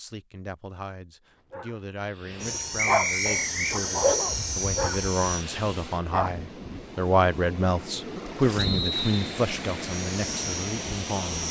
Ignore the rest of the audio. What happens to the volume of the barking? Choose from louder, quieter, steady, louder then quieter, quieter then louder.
louder then quieter.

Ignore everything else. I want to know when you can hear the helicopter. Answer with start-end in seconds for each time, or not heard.
2.4-5.5, 9.8-11.4.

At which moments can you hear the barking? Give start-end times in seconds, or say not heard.
1.5-6.3.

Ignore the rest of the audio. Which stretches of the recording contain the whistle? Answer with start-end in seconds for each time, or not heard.
2.8-3.8, 8.6-9.4.